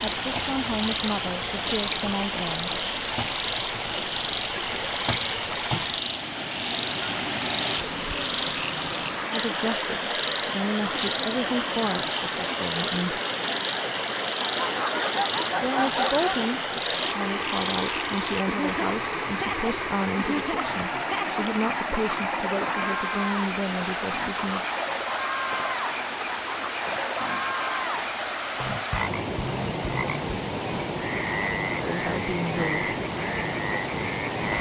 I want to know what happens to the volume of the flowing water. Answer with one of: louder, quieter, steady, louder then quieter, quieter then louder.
steady.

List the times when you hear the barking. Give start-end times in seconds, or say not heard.
14.4-16.4.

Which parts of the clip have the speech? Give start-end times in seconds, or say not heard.
0.0-2.7, 9.3-13.2, 15.6-24.6, 31.8-32.9.